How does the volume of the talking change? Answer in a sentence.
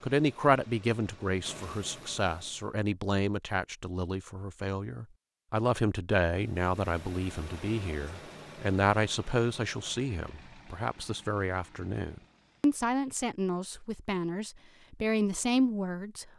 The loudness of the talking stays about the same.